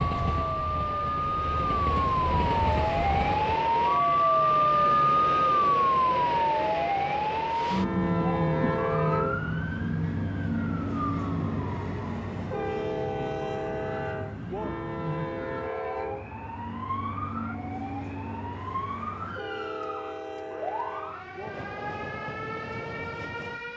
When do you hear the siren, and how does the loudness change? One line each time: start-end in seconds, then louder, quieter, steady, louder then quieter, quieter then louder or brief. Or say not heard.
0.0-23.7 quieter.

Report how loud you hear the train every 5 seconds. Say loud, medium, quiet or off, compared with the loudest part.
loud, loud, loud, medium, medium.